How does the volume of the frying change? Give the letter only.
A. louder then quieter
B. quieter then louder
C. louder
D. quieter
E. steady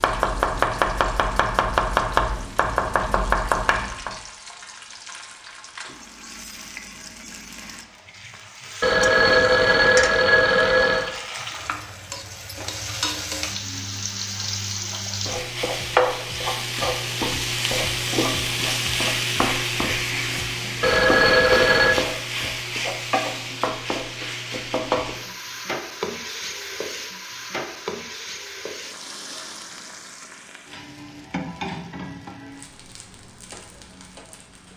A.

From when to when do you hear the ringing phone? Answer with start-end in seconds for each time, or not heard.
8.8-11.1, 20.8-22.0.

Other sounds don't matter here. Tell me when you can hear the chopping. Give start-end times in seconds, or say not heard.
0.0-4.2.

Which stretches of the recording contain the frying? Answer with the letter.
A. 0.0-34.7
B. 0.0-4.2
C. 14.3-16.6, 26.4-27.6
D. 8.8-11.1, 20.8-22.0
A.